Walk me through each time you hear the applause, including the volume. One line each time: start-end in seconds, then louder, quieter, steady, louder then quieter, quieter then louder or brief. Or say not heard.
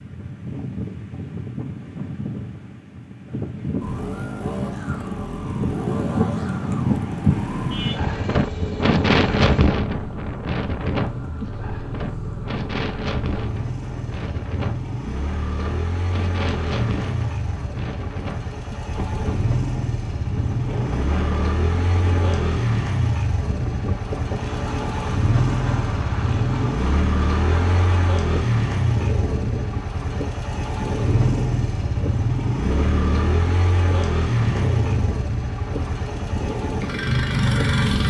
not heard.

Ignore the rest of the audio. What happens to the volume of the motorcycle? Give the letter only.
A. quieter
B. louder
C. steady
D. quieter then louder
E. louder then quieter
B.